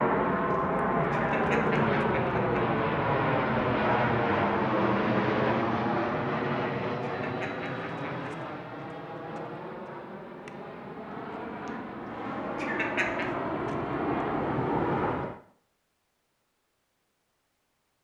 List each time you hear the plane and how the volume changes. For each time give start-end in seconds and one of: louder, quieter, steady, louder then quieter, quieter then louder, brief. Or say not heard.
0.0-15.4 quieter then louder.